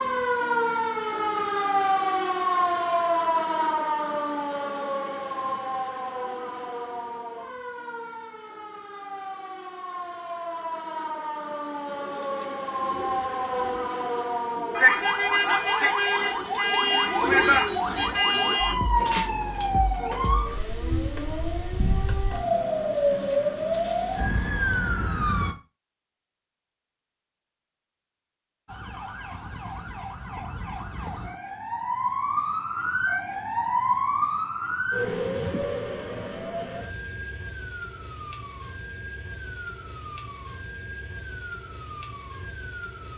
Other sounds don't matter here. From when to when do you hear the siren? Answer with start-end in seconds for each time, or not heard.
0.0-25.6, 28.6-43.1.